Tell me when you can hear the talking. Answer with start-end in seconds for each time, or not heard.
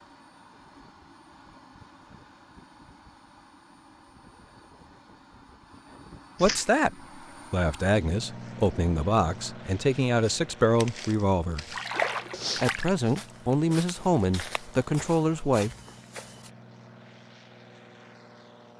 6.4-11.8, 12.6-15.7.